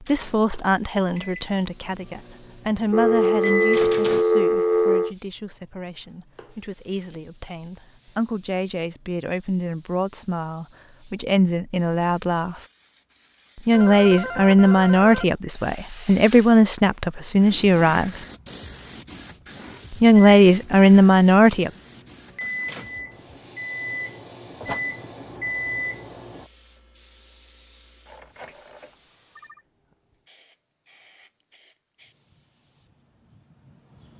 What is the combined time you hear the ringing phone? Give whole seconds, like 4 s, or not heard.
5 s.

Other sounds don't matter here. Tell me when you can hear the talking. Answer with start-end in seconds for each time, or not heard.
0.0-12.6, 13.6-18.2, 19.9-21.7.